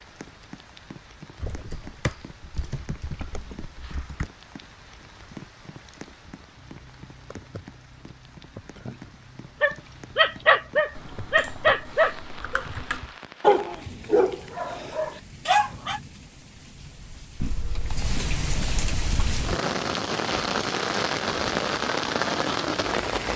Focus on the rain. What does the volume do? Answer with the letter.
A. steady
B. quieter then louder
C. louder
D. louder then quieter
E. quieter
C.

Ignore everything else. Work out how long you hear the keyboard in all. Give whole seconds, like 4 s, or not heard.
7 s.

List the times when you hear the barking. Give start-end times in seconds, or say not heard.
9.6-16.0.